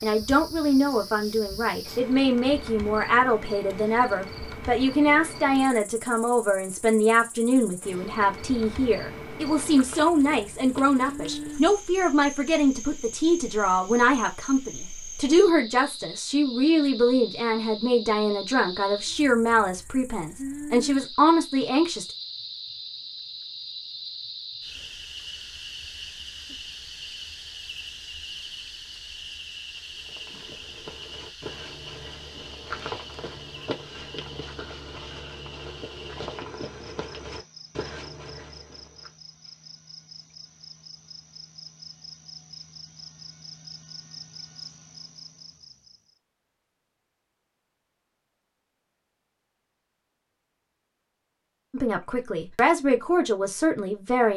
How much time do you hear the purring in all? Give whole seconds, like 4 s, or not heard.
not heard.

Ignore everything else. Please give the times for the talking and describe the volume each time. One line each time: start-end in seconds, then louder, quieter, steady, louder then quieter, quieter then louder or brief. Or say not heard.
0.0-22.1 steady
51.7-54.3 brief.